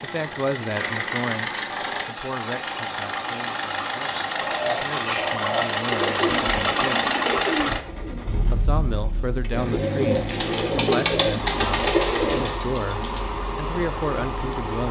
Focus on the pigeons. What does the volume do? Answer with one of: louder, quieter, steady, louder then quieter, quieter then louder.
quieter then louder.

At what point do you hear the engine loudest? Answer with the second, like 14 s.
7 s.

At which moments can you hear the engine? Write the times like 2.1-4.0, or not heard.
0.0-14.8.